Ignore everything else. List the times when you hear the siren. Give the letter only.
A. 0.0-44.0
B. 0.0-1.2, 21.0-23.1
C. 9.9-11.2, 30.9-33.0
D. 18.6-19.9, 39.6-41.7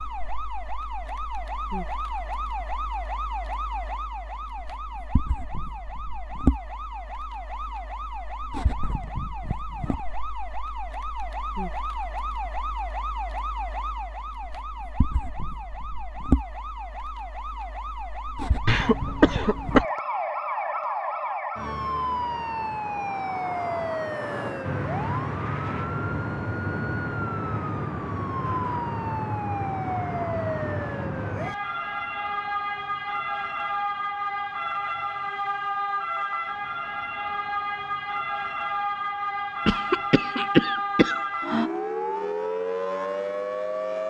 A.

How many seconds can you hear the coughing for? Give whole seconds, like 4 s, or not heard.
3 s.